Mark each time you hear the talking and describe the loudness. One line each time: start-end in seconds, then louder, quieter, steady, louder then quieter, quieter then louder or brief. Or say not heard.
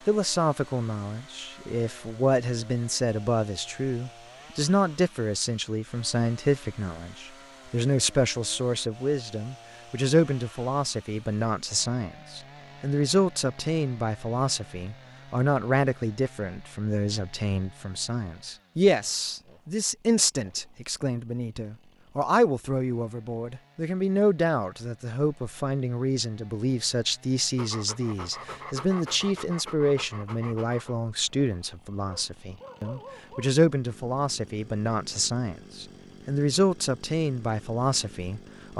0.1-38.7 steady.